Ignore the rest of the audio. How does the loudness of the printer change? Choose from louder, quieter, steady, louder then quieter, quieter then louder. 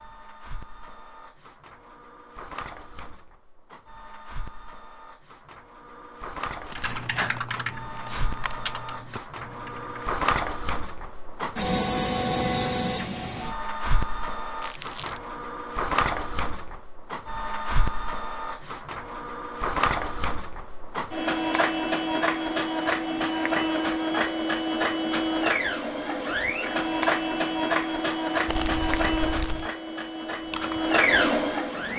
louder.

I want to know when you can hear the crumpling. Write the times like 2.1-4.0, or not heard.
6.7-8.6, 14.6-15.2, 28.4-29.7.